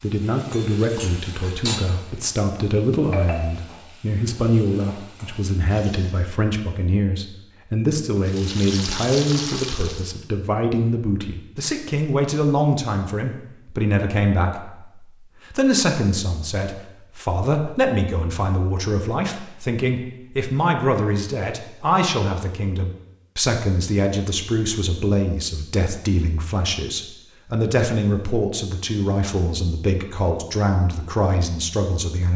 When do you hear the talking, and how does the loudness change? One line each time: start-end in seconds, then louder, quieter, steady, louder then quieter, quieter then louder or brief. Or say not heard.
0.0-32.3 steady.